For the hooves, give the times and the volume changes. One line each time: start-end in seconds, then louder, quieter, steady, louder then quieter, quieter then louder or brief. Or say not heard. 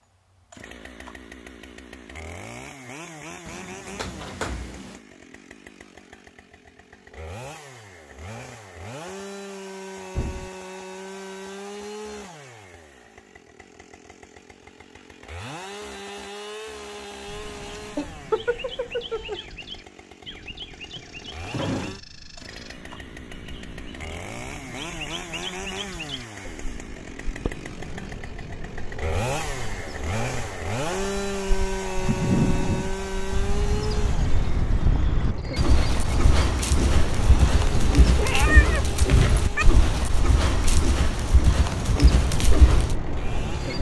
31.9-43.0 steady.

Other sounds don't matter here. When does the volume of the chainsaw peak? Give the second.
31 s.